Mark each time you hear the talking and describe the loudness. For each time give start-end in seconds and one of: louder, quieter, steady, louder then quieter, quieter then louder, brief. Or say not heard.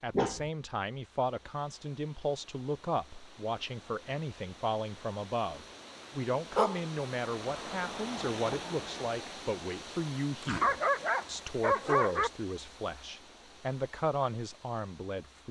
0.0-15.4 steady.